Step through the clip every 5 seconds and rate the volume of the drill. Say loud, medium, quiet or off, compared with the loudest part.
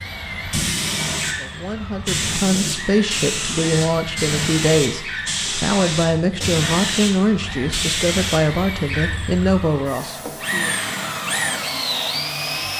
medium, medium, loud.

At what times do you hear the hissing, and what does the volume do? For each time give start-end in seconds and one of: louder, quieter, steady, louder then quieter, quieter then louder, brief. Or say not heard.
0.0-12.7 quieter.